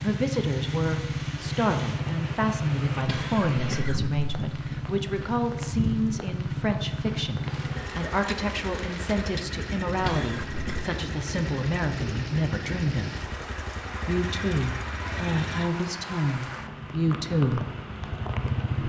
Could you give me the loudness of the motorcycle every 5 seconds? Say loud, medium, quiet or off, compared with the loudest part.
loud, loud, medium, loud.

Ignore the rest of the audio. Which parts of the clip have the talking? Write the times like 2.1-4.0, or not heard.
0.0-13.3, 14.1-17.6.